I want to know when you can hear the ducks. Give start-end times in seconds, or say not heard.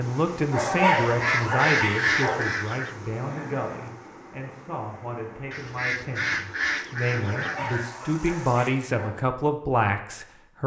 0.9-3.0, 5.5-7.9.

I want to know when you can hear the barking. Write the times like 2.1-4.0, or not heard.
0.5-2.5, 7.2-9.2.